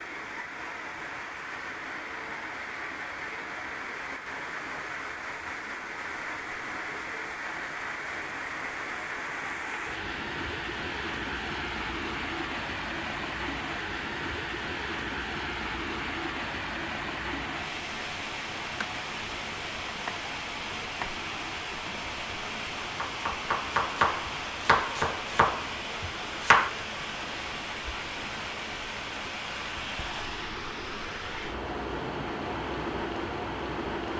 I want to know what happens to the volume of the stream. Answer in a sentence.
The loudness of the stream stays about the same.